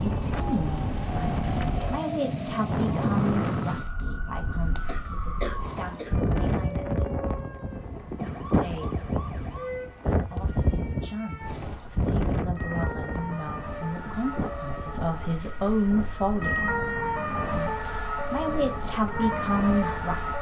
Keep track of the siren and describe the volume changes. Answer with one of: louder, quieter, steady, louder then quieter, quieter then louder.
louder.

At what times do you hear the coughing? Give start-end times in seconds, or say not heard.
4.8-6.2.